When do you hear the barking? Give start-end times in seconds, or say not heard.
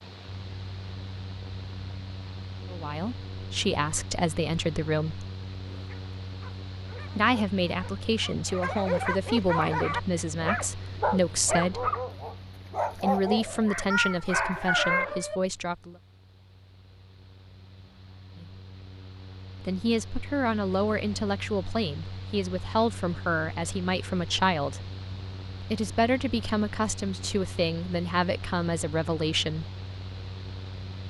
5.7-15.4.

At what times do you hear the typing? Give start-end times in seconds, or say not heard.
not heard.